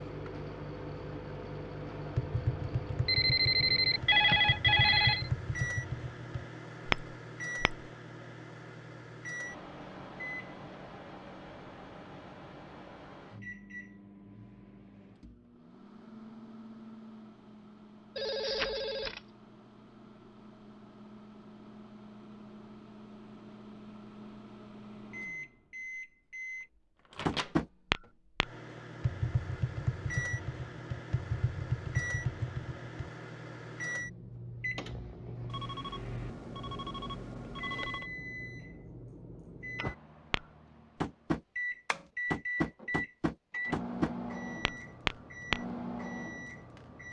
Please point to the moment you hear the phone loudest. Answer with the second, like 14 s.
4 s.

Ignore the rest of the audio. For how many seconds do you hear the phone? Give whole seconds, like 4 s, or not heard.
6 s.